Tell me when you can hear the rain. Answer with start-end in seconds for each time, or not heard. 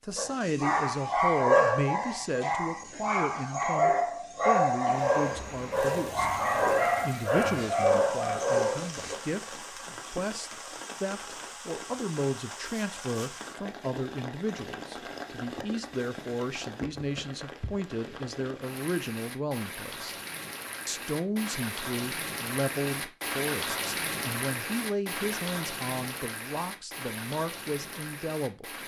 4.9-28.8.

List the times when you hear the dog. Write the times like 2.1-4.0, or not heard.
0.1-9.2.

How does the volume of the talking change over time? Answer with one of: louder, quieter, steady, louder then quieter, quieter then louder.
steady.